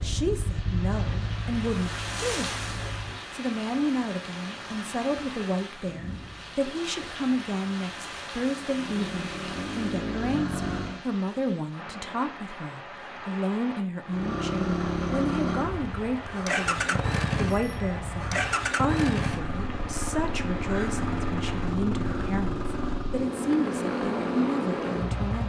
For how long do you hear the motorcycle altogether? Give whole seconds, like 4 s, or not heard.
17 s.